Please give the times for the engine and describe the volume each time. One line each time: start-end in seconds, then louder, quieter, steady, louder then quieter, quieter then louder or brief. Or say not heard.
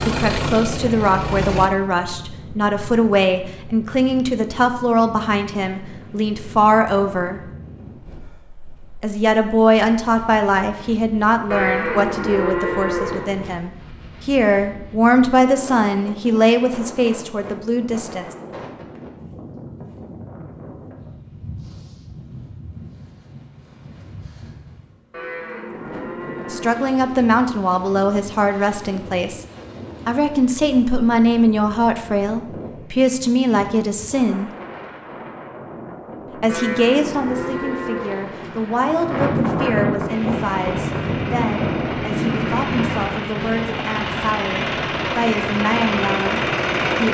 0.0-1.7 brief
40.0-47.1 louder.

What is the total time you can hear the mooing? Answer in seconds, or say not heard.
6 s.